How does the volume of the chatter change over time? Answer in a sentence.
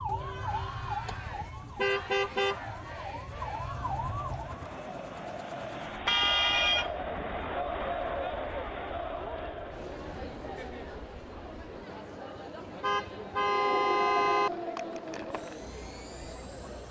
The loudness of the chatter goes up, then down.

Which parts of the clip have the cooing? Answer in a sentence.
You can't hear the cooing here.